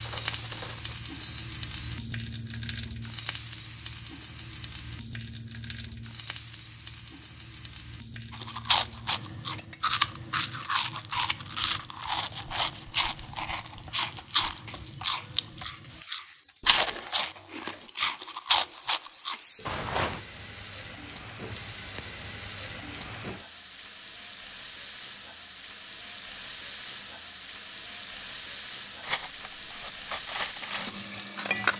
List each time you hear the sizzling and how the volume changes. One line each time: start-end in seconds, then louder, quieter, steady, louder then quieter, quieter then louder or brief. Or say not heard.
0.0-31.7 quieter then louder.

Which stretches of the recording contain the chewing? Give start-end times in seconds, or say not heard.
8.3-20.2.